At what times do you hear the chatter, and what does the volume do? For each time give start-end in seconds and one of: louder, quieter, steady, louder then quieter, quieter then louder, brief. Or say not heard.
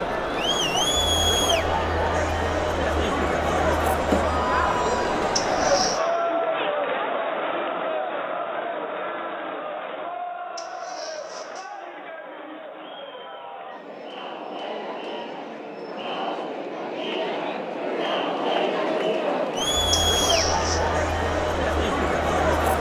0.0-22.7 quieter then louder.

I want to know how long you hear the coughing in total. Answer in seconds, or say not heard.
3 s.